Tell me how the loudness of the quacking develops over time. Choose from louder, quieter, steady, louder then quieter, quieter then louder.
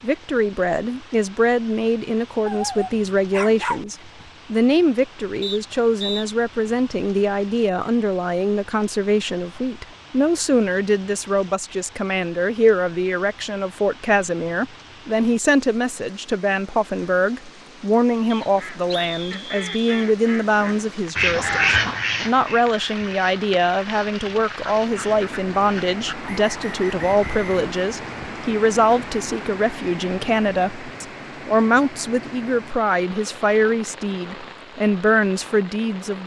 louder then quieter.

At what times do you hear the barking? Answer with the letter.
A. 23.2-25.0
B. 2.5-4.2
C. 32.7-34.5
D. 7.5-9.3
B.